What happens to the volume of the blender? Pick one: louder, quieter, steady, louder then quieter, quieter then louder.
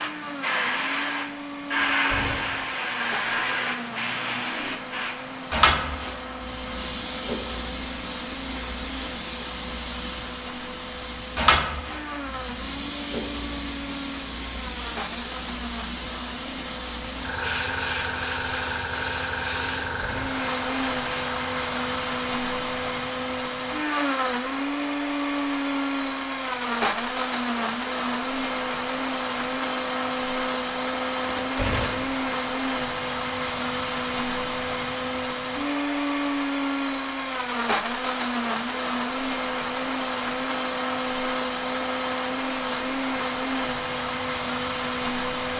louder.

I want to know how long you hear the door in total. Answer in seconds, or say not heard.
2 s.